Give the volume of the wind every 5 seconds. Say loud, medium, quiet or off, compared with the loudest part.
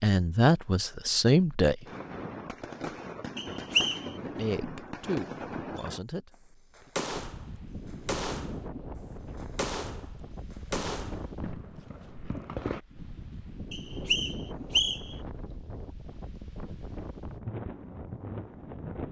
off, loud, loud, loud.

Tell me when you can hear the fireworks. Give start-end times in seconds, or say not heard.
1.9-6.0, 6.8-8.6, 9.3-12.8.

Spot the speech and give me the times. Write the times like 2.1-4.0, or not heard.
0.0-1.9, 4.1-6.9.